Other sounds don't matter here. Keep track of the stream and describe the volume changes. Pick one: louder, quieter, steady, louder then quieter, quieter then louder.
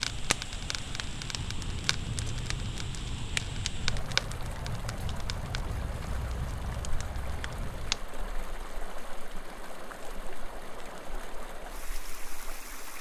steady.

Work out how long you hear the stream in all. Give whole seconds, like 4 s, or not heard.
13 s.